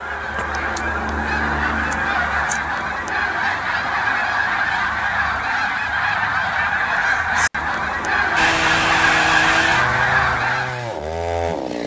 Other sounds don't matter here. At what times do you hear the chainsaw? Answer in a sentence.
The chainsaw can be heard from 8.3 to 11.8 s.